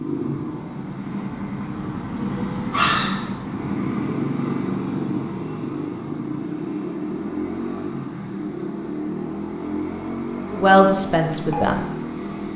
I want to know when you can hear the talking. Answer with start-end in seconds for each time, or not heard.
10.5-11.8.